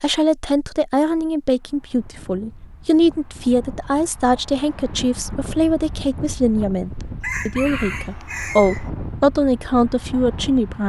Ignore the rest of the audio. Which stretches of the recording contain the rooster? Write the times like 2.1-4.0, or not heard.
7.2-8.9.